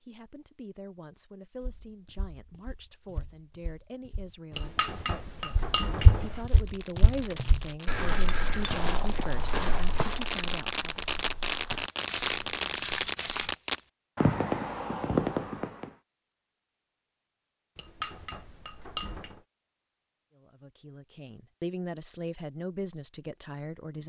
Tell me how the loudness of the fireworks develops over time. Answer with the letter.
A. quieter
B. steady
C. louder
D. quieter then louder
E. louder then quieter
C.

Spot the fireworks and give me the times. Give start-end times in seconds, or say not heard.
6.2-15.9.